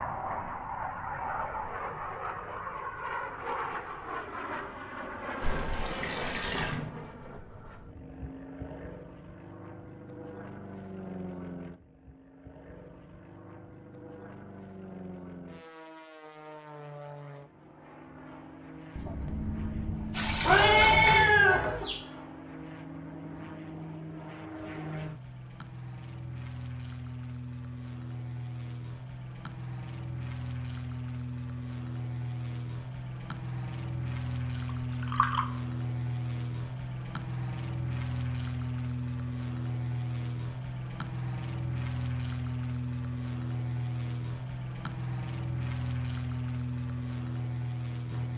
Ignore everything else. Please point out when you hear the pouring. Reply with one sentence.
The pouring can be heard from 5.4 to 6.8 s, from 18.9 to 21.3 s and from 34.6 to 35.5 s.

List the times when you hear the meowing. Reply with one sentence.
You can hear the meowing from 20.4 to 21.9 s.